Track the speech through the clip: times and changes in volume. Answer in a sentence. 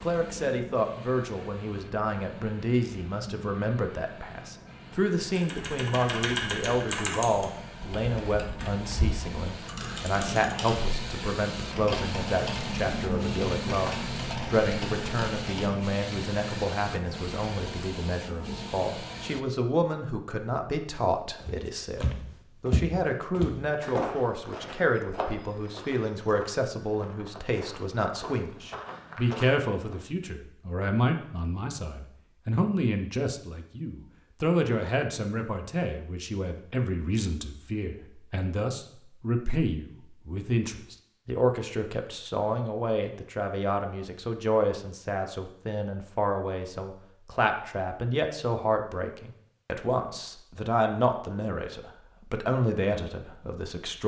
You can hear the speech from 0.0 to 54.0 s, at a steady volume.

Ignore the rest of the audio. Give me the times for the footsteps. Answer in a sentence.
You can hear the footsteps from 21.4 to 30.0 s.